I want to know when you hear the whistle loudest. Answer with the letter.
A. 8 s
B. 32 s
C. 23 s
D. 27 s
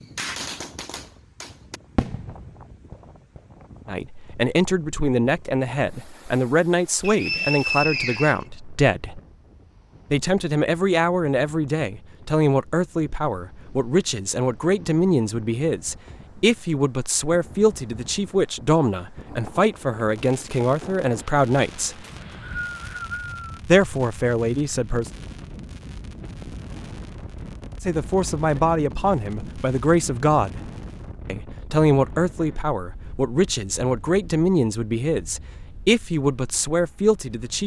A.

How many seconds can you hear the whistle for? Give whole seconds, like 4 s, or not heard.
3 s.